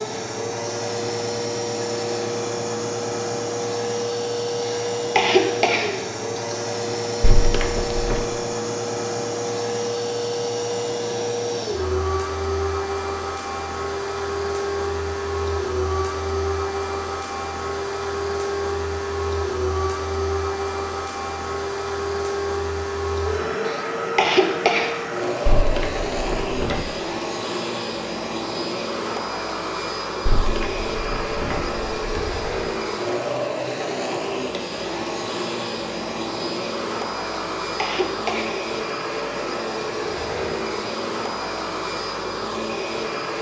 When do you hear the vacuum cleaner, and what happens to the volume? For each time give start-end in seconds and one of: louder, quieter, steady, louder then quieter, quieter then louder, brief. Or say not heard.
0.0-43.3 steady.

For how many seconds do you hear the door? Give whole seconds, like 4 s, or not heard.
5 s.